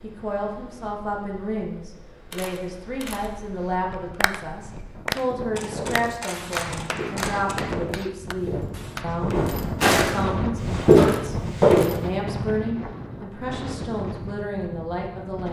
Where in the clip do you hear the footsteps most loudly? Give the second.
11 s.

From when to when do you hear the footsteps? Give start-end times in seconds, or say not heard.
5.6-6.0, 6.8-11.9.